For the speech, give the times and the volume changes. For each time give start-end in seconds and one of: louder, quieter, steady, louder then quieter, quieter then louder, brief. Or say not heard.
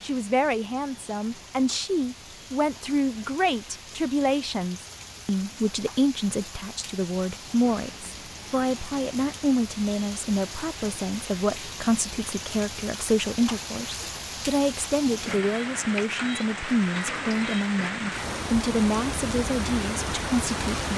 0.0-20.9 steady.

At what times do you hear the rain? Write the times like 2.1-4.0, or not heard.
0.0-20.9.